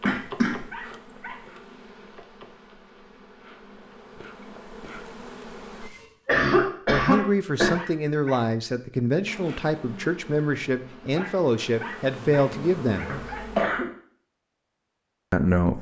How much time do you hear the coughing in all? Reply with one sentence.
The coughing can be heard for 3 seconds in total.